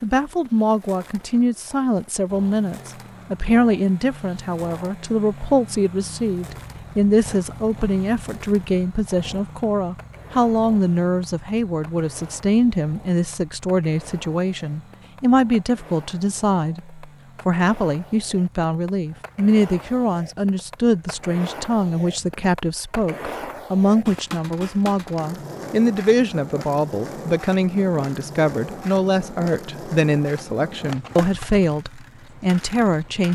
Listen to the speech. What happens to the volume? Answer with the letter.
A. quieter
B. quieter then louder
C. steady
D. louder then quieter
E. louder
C.